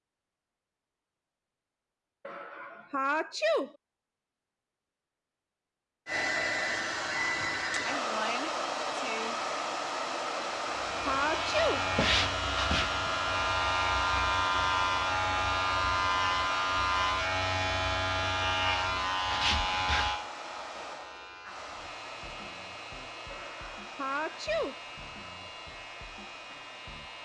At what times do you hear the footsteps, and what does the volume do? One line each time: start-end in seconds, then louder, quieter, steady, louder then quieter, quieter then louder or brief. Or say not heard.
not heard.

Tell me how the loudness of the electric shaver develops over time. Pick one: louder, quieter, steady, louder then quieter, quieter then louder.
quieter.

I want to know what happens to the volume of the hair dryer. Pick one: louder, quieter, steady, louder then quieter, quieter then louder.
quieter.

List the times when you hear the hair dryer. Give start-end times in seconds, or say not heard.
6.0-27.2.